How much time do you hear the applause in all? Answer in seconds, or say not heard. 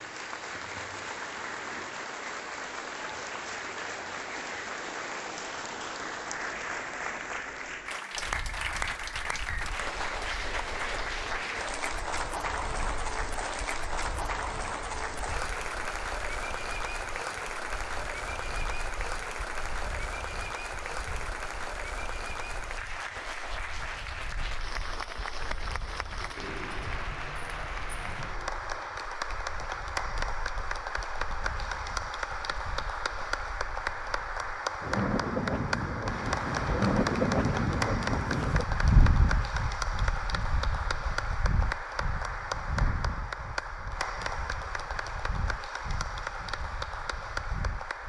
48 s.